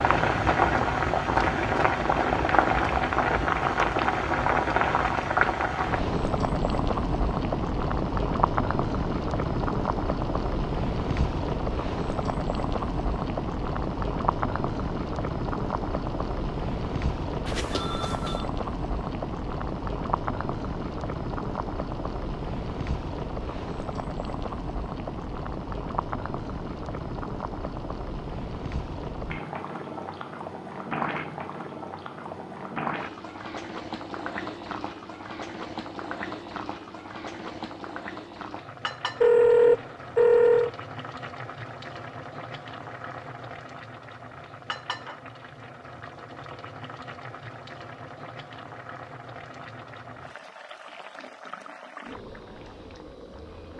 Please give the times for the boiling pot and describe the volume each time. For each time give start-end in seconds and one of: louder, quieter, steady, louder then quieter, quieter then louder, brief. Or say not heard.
0.0-53.7 quieter.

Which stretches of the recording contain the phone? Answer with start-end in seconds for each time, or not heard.
17.4-18.4, 39.2-40.7.